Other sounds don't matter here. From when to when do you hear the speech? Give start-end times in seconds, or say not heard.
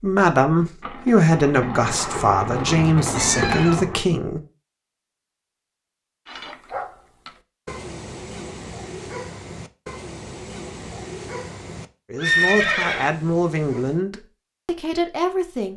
0.0-4.4, 12.1-15.7.